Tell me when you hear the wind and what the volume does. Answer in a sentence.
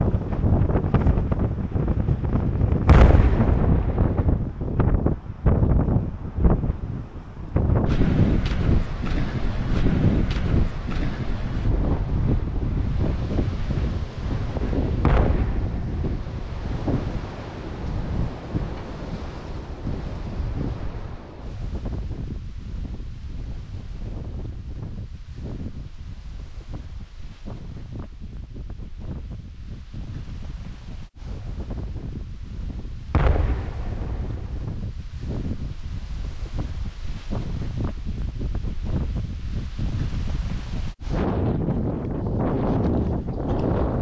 You can hear the wind from 0.0 to 43.9 s, getting quieter then louder.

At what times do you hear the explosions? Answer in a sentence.
The explosions can be heard from 2.9 to 4.3 s, from 15.1 to 16.4 s and from 33.1 to 34.6 s.